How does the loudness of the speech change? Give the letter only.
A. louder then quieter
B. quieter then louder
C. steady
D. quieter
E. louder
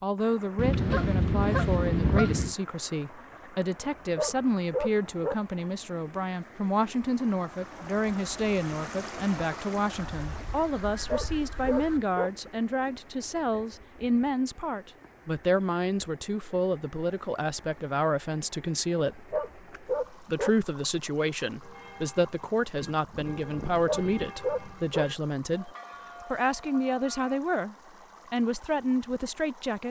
C.